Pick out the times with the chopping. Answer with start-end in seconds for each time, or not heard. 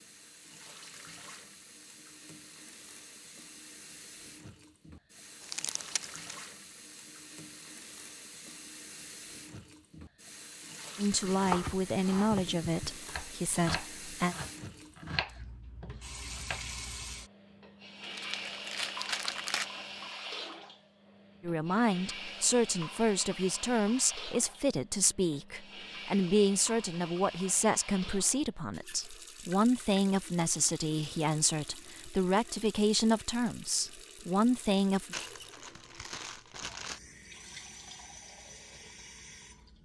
11.3-16.6.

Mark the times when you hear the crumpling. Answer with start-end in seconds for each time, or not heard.
5.4-6.3, 18.0-19.7, 35.1-37.0.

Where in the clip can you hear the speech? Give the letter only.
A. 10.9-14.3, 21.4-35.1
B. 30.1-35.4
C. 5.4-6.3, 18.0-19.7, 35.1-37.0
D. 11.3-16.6
A.